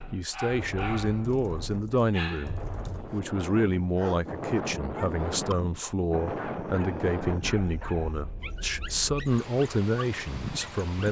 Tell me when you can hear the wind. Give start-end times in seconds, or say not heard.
0.0-11.0.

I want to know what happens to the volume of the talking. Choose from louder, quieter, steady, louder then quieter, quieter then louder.
steady.